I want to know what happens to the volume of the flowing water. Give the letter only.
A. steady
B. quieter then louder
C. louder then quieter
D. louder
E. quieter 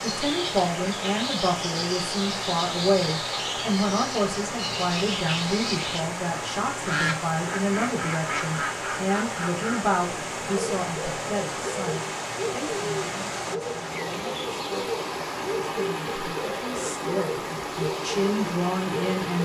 A.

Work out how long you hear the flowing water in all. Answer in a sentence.
The flowing water can be heard for 19 seconds in total.